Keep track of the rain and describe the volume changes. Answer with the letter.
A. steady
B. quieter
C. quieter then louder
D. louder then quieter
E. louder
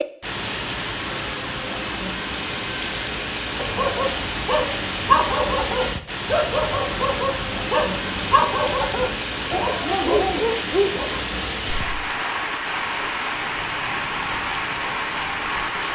A.